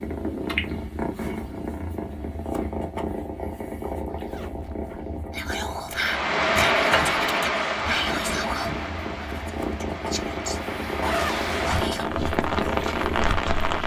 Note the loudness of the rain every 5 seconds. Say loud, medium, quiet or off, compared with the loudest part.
off, loud, loud.